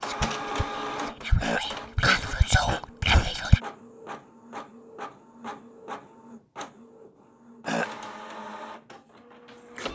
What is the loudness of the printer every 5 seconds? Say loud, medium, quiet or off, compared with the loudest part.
loud, medium.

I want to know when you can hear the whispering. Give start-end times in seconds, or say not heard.
0.0-3.6.